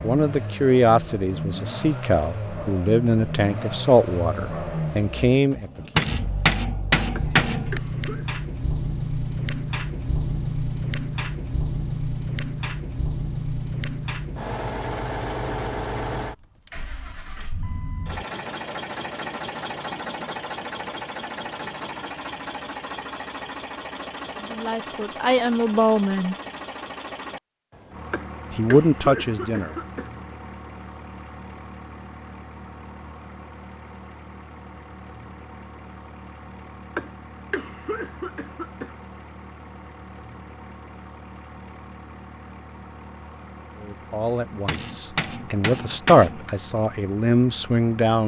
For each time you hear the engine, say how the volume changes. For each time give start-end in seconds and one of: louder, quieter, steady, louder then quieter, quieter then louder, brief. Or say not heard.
0.0-48.2 quieter.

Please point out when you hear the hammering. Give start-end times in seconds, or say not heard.
5.8-7.8, 44.5-46.5.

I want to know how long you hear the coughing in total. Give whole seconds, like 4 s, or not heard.
5 s.